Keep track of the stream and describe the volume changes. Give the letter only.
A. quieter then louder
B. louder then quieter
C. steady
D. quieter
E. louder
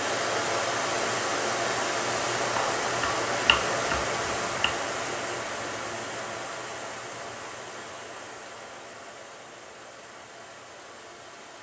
D.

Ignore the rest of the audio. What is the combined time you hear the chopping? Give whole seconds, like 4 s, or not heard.
2 s.